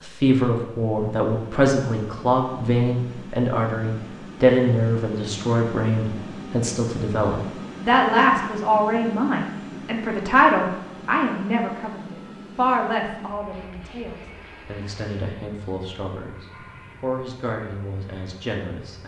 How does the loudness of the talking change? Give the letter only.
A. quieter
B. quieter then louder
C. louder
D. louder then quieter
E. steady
A.